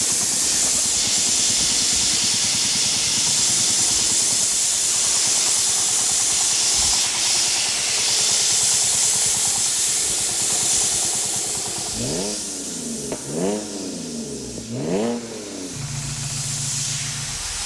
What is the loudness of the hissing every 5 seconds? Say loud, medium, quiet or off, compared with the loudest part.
loud, loud, medium, medium.